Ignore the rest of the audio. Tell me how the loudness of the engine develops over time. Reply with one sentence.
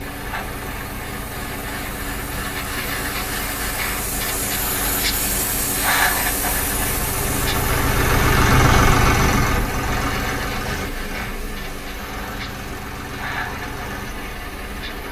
The loudness of the engine goes up, then down.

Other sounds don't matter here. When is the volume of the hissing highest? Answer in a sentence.
The volume of the hissing peaks at 6 seconds.